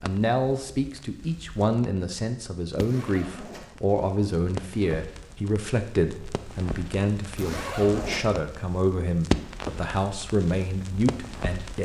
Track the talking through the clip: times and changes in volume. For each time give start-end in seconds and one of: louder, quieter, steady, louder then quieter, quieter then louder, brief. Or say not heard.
0.0-11.8 steady.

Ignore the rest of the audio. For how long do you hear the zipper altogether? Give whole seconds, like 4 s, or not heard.
2 s.